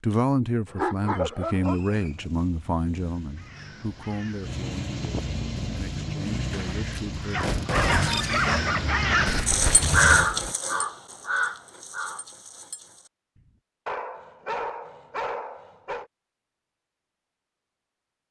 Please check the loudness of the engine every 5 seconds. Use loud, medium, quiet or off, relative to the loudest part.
medium, loud, off, off.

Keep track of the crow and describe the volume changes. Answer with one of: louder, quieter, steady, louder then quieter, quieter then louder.
louder then quieter.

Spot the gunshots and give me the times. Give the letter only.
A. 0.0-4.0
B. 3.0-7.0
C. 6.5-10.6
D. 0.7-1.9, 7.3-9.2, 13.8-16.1
C.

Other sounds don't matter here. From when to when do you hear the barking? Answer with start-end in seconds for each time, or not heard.
0.7-1.9, 7.3-9.2, 13.8-16.1.